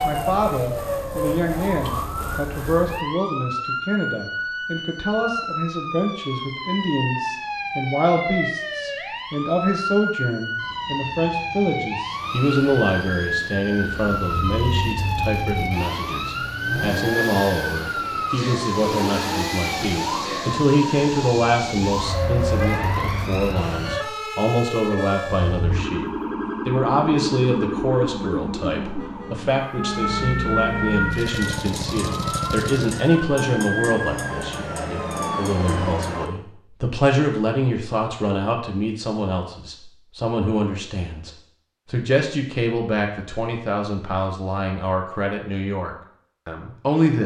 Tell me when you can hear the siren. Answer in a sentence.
The siren can be heard from 0.0 to 36.3 s.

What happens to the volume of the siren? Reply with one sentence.
The loudness of the siren stays about the same.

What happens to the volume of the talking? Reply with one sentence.
The loudness of the talking stays about the same.